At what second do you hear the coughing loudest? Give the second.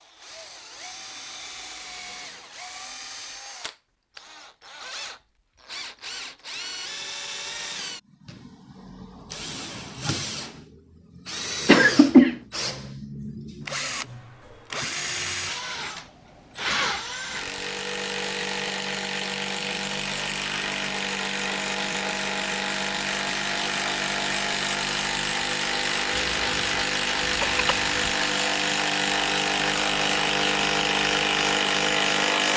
12 s.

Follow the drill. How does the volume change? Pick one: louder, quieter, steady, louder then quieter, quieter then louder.
louder.